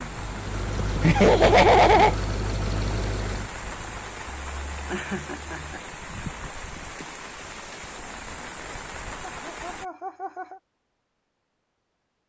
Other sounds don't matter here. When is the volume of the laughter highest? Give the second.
2 s.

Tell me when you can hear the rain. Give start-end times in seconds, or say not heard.
0.0-9.8.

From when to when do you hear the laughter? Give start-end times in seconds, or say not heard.
1.0-2.1, 4.4-5.8, 9.2-10.6.